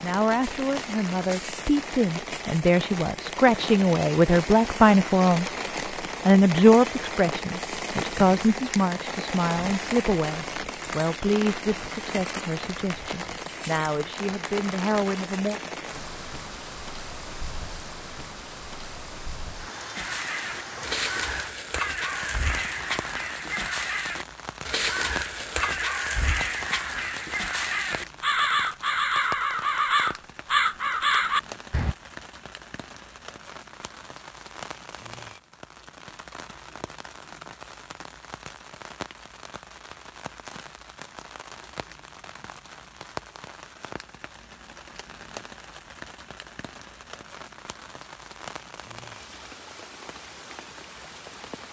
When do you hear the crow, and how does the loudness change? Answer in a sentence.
You can hear the crow from 19.9 to 31.9 s, getting louder.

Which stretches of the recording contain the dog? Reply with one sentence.
You can't hear the dog here.